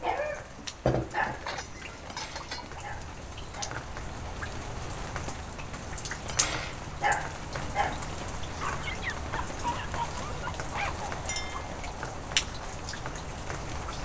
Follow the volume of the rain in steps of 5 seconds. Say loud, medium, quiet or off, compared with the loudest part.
medium, loud, loud.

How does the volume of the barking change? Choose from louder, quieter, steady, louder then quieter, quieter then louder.
quieter then louder.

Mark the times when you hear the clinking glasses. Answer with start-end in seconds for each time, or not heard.
1.2-2.8, 11.2-11.8.